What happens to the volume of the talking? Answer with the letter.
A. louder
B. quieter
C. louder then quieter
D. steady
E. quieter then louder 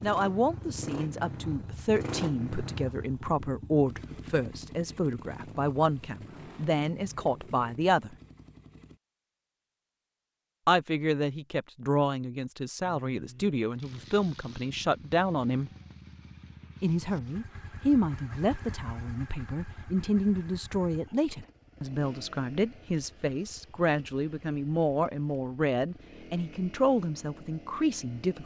D.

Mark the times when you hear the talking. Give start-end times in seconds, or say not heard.
0.0-8.1, 10.7-15.7, 16.8-28.4.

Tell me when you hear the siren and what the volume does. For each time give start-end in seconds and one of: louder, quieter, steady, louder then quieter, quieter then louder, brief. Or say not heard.
not heard.